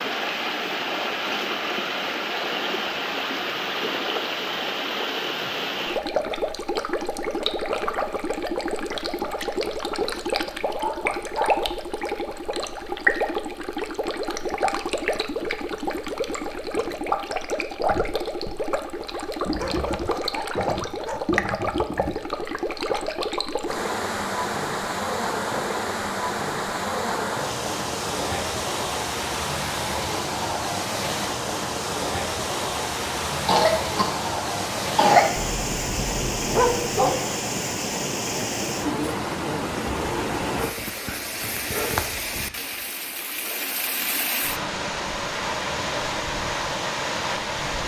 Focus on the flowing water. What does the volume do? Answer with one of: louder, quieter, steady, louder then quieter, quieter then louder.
steady.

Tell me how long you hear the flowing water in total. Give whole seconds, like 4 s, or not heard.
48 s.